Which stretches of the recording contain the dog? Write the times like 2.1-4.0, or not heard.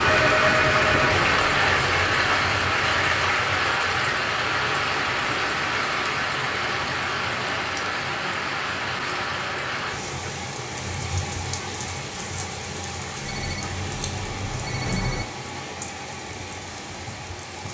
not heard.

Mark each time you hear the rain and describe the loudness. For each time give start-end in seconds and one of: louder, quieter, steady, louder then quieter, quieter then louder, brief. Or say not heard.
0.0-17.7 quieter.